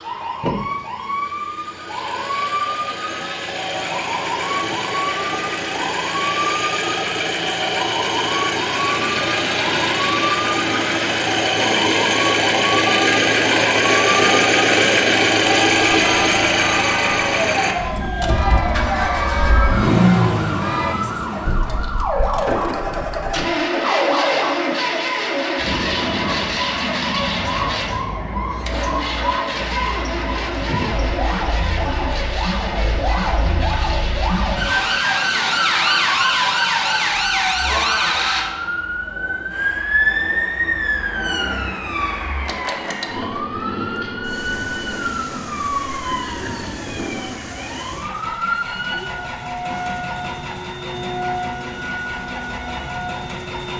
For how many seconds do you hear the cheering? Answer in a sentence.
The cheering can be heard for 5 seconds in total.